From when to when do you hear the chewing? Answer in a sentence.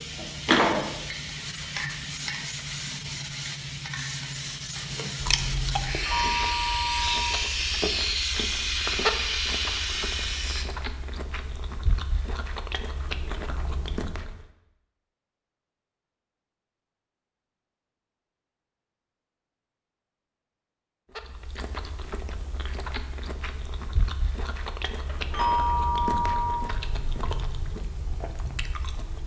The chewing can be heard from 4.8 to 14.4 s and from 21.1 to 29.2 s.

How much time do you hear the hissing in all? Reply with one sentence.
You can hear the hissing for 11 seconds altogether.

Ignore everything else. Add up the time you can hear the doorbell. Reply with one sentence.
The doorbell can be heard for 3 seconds in total.